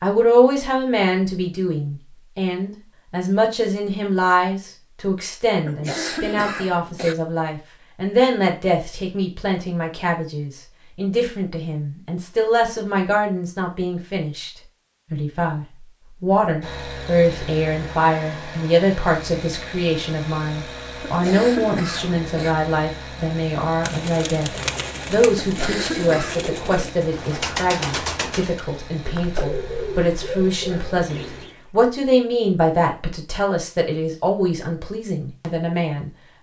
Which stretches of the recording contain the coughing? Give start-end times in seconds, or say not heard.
5.6-7.2, 21.0-22.6, 25.4-26.4.